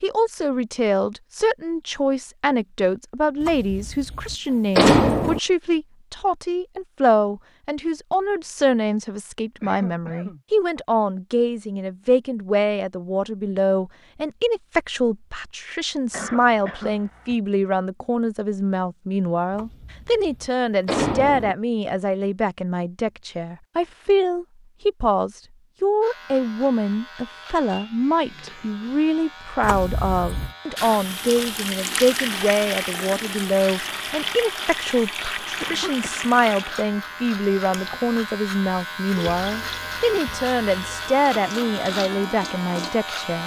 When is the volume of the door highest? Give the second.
5 s.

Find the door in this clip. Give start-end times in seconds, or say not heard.
3.4-5.4, 19.5-21.6, 29.6-30.5.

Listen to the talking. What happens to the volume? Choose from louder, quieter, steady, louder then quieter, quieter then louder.
steady.